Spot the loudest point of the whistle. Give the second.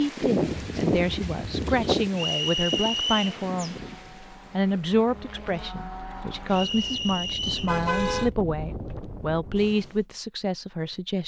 3 s.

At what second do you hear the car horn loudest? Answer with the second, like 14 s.
8 s.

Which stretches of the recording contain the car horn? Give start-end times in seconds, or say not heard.
0.3-1.9, 7.5-8.3.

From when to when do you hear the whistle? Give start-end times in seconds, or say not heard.
2.1-3.4, 6.5-7.8.